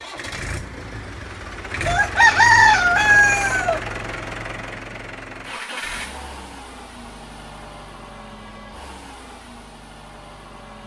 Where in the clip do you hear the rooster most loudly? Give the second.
3 s.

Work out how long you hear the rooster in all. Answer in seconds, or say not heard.
2 s.